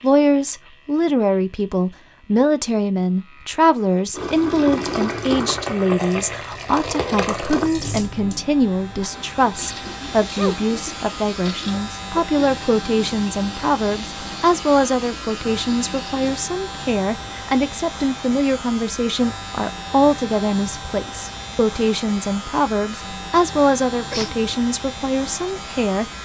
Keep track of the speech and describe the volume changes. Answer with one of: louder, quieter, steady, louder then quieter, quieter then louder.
steady.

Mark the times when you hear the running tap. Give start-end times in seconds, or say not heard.
4.1-16.3.